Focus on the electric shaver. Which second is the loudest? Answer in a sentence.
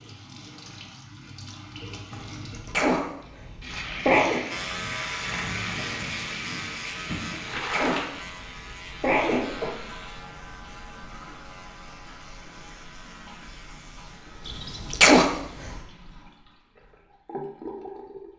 The loudest moment of the electric shaver is at 5 seconds.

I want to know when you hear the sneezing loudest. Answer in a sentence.
The volume of the sneezing peaks at 15 seconds.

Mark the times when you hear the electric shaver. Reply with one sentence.
The electric shaver can be heard from 4.5 to 14.8 s.